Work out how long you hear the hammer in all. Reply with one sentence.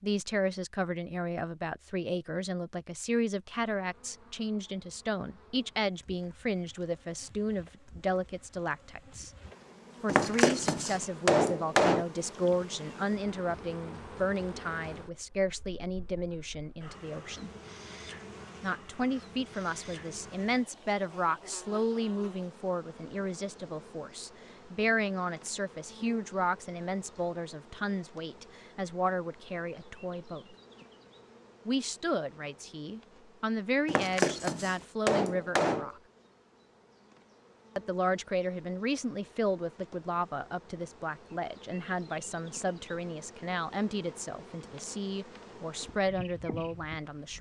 The hammer can be heard for 4 seconds in total.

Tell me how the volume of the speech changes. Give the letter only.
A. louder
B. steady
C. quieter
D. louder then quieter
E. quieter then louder
B.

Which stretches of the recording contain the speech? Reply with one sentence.
The speech can be heard from 0.0 to 9.3 s, from 10.0 to 17.5 s, from 18.6 to 30.6 s, from 31.6 to 36.0 s and from 37.8 to 47.3 s.